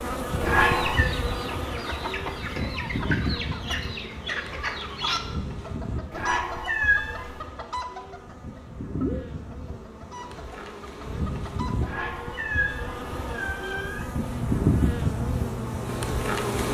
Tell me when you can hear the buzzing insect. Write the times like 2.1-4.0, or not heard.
0.0-16.6.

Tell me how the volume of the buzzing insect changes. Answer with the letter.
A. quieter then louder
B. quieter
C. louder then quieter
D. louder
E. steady
A.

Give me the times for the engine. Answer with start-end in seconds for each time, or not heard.
14.1-16.6.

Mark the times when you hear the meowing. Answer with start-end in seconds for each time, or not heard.
0.4-1.1, 6.1-7.5, 11.8-14.2.